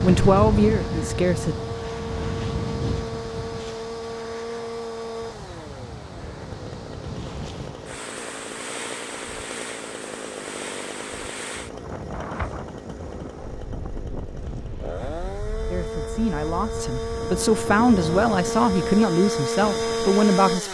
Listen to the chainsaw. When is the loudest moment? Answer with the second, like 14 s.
20 s.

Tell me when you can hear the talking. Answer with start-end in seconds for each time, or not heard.
0.0-1.6, 15.7-20.6.